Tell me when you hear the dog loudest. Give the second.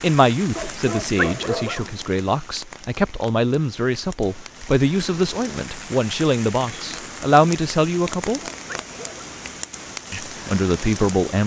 1 s.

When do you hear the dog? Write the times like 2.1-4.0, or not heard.
0.6-1.9, 8.2-9.4.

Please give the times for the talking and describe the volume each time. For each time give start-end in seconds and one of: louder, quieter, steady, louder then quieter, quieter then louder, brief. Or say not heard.
0.0-8.4 louder
10.1-11.4 brief.